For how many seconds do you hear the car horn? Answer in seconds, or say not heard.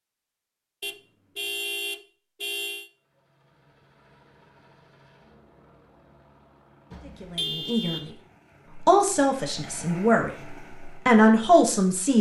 3 s.